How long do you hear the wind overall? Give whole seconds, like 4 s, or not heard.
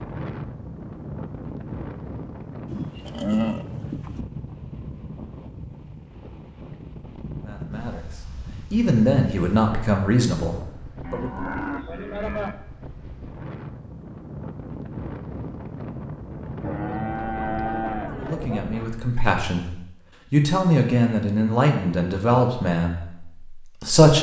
19 s.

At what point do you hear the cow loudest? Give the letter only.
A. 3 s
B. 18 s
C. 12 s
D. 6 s
A.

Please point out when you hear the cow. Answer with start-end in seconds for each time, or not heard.
2.6-4.2, 11.0-12.6, 16.6-18.6.